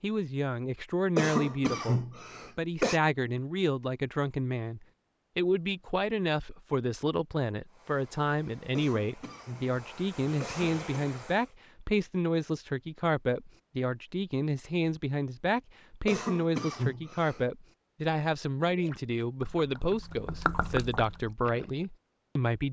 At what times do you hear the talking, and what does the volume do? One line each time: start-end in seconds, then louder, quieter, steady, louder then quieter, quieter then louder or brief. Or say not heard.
0.0-22.6 steady.